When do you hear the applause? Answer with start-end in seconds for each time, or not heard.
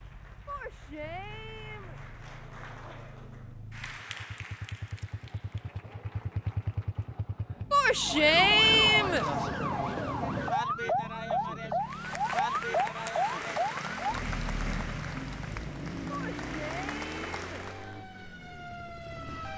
0.0-7.2, 11.8-17.9.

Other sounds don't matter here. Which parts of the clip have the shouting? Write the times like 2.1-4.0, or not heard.
0.5-1.9, 7.7-9.2, 16.1-17.6.